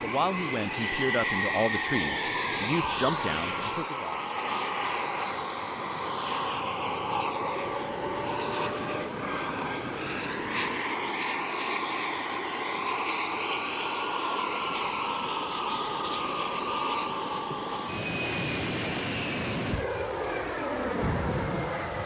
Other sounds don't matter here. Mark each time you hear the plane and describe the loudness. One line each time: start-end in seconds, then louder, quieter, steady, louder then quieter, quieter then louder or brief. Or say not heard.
0.0-22.0 steady.